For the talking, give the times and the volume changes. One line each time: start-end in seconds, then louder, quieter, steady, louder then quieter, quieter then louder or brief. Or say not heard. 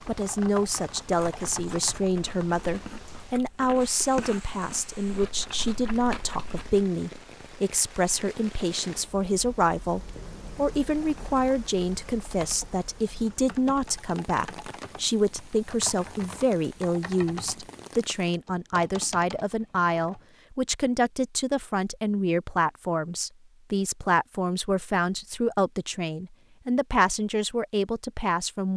0.1-28.7 steady.